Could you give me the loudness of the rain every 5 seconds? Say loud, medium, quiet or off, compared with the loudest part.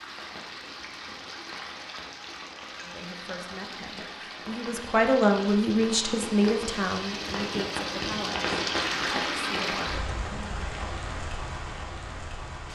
medium, loud, medium.